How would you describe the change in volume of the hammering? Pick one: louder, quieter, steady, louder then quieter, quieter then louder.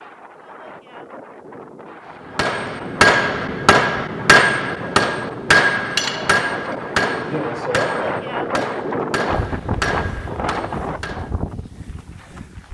quieter.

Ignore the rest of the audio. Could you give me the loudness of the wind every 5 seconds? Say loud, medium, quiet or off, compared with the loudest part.
medium, loud, loud.